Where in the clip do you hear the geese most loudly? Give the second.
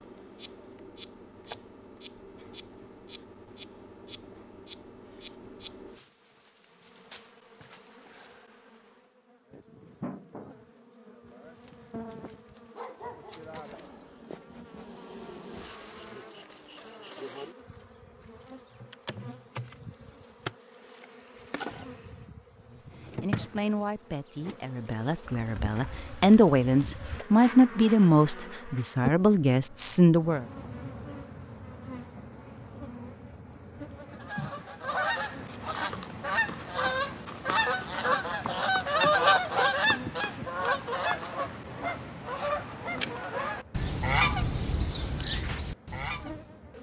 39 s.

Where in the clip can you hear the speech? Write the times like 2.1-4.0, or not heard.
22.7-30.4.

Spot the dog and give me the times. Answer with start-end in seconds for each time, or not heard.
12.1-13.9.